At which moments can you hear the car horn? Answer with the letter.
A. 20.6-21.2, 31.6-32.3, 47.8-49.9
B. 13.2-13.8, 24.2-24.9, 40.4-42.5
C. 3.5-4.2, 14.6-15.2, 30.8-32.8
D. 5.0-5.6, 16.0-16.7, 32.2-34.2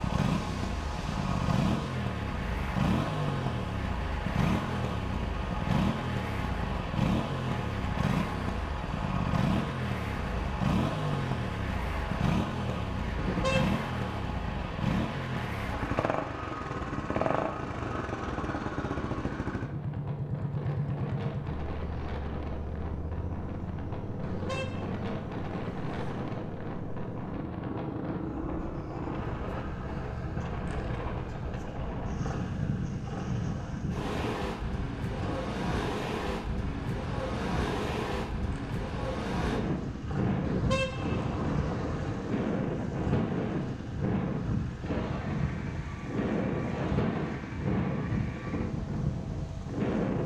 B.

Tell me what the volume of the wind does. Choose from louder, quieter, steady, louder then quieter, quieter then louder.
louder.